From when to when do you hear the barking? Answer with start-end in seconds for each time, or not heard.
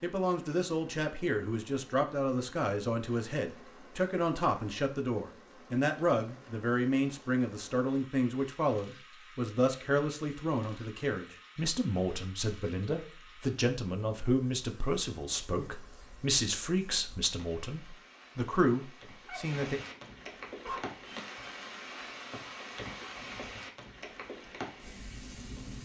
19.2-20.9.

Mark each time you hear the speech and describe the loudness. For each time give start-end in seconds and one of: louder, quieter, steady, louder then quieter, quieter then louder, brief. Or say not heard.
0.0-19.8 steady.